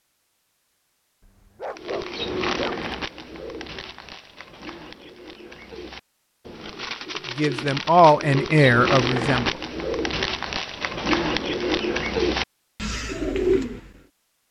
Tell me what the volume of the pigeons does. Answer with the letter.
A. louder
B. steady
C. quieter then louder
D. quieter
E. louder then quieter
C.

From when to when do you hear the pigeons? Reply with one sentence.
You can hear the pigeons from 1.8 to 13.9 s.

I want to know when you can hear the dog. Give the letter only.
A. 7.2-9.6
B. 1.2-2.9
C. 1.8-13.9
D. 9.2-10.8
B.